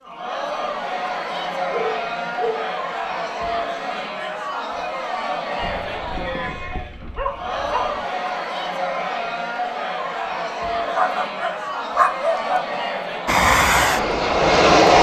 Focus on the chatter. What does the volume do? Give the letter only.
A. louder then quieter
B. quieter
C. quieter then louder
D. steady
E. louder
D.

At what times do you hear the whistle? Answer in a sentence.
The whistle can't be heard in this clip.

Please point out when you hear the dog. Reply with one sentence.
You can hear the dog from 1.3 to 2.8 s, from 5.5 to 8.0 s and from 10.8 to 12.7 s.